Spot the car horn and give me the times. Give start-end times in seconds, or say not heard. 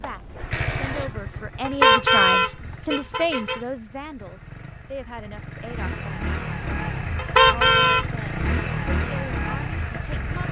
1.6-3.6, 7.2-8.1.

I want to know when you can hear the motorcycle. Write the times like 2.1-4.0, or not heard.
0.0-10.4.